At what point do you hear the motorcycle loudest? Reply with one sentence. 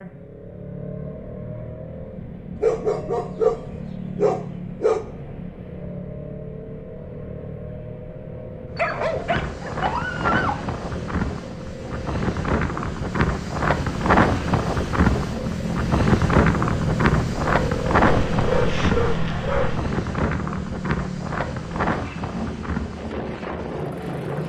The volume of the motorcycle peaks at 17 seconds.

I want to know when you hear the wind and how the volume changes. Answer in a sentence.
The wind can be heard from 8.7 to 24.4 s, getting louder then quieter.